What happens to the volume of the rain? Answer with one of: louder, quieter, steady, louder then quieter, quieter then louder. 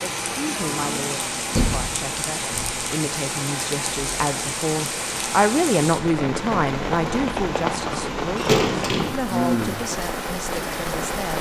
steady.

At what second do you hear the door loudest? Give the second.
9 s.